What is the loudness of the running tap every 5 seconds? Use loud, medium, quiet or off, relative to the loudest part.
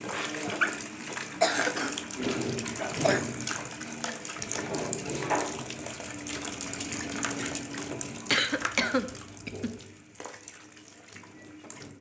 loud, loud, quiet.